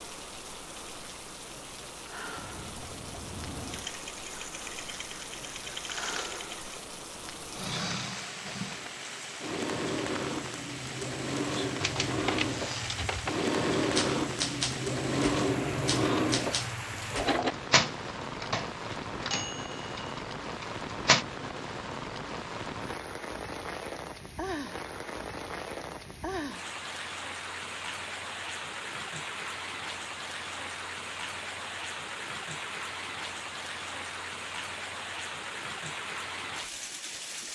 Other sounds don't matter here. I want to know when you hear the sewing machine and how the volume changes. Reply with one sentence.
The sewing machine can be heard from 2.4 to 17.6 s, getting louder.